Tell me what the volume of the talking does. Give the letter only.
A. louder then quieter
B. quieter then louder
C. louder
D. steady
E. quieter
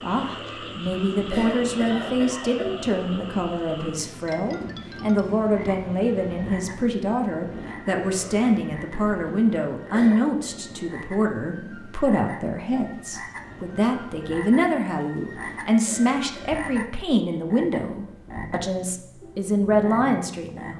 D.